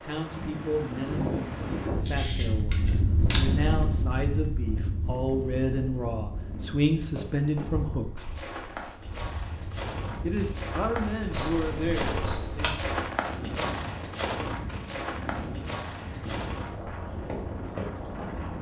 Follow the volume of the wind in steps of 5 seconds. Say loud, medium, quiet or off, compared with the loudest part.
loud, medium, medium, medium.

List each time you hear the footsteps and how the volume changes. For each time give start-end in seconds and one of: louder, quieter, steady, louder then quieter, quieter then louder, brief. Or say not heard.
7.2-18.4 louder then quieter.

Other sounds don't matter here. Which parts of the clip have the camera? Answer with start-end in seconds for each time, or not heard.
2.0-3.5, 11.3-12.7.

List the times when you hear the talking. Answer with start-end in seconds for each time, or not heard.
0.0-8.2, 10.2-12.8.